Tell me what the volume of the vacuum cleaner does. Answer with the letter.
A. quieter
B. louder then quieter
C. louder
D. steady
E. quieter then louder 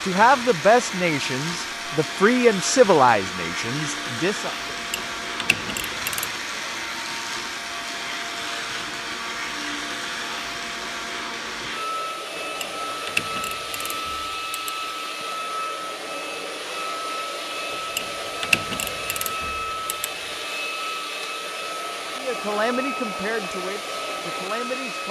D.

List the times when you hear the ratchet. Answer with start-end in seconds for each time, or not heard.
4.8-6.4, 12.4-14.9, 17.7-20.5.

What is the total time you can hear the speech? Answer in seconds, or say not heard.
7 s.